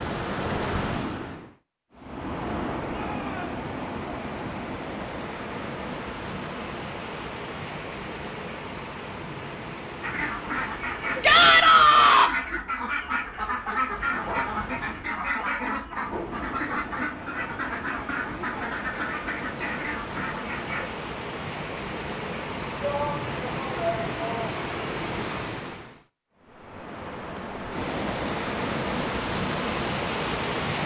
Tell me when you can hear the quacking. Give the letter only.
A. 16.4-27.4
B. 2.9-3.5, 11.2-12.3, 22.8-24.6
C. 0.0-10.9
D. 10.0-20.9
D.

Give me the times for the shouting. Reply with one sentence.
You can hear the shouting from 2.9 to 3.5 s, from 11.2 to 12.3 s and from 22.8 to 24.6 s.